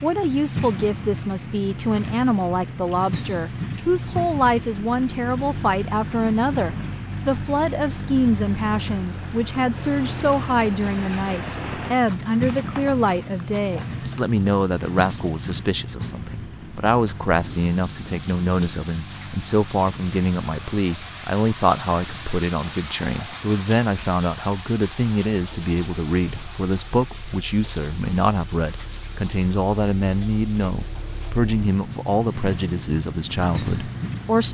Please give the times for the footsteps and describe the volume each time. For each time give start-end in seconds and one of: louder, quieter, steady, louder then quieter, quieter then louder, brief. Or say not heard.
not heard.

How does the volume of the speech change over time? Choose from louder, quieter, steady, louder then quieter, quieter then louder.
steady.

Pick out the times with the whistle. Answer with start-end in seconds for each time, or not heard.
not heard.